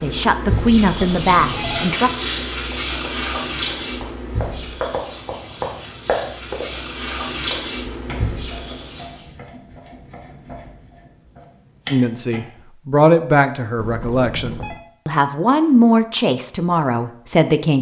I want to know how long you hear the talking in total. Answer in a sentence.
The talking can be heard for 8 seconds in total.